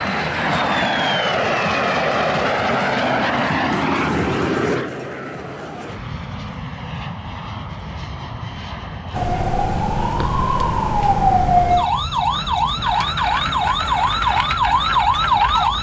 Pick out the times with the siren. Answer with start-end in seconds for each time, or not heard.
9.1-15.7.